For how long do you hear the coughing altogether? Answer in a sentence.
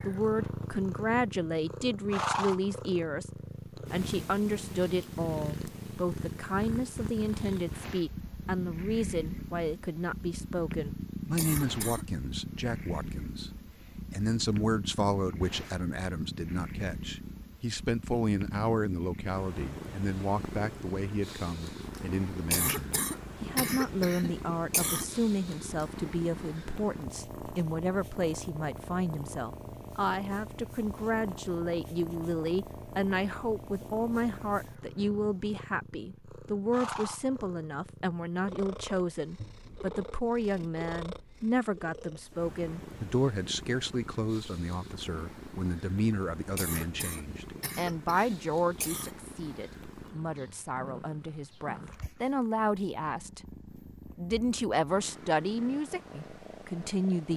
The coughing can be heard for 6 seconds in total.